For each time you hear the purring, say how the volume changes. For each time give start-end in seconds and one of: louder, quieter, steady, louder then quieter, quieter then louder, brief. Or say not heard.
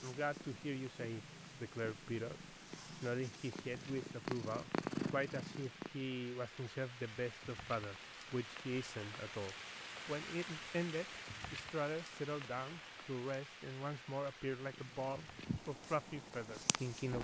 0.0-6.1 louder
14.6-17.1 brief.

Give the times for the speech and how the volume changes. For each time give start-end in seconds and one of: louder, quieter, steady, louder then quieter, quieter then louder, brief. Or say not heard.
0.0-17.1 steady.